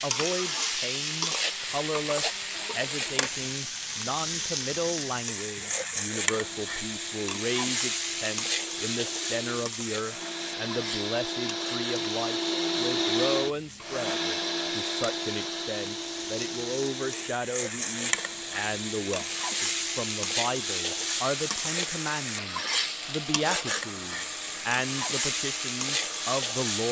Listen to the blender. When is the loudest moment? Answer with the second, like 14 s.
13 s.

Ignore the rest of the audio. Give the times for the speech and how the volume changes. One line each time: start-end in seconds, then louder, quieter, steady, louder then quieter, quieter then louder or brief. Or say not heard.
0.0-26.8 steady.